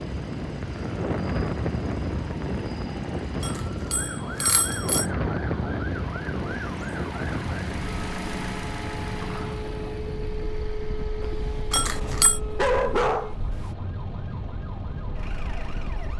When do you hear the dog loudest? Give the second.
13 s.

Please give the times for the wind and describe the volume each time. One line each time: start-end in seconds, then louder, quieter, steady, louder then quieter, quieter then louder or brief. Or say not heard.
0.0-16.1 quieter.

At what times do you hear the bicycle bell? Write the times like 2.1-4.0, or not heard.
3.4-5.1, 11.7-12.4.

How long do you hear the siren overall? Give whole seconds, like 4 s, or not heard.
16 s.